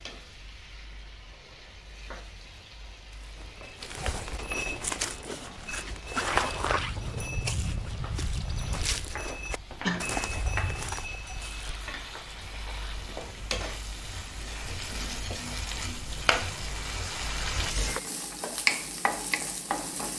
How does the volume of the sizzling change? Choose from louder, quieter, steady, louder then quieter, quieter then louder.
louder.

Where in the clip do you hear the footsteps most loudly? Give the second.
6 s.